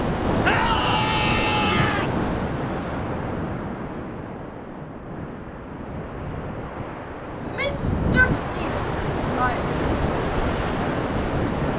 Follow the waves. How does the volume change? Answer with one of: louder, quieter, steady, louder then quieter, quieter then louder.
quieter then louder.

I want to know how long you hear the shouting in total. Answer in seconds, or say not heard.
4 s.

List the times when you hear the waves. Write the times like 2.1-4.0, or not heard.
0.0-11.7.